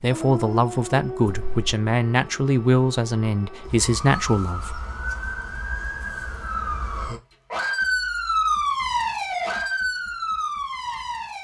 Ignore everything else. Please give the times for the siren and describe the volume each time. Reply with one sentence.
You can hear the siren from 0.0 to 11.3 s, getting louder.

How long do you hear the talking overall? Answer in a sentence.
You can hear the talking for 5 seconds altogether.